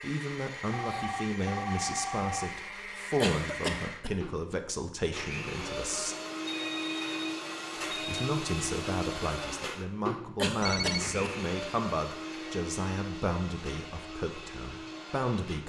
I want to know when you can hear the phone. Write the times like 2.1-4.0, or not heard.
0.7-2.5, 6.5-8.2, 10.6-11.2.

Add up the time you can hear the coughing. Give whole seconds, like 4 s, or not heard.
2 s.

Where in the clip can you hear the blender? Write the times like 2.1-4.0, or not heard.
0.0-15.6.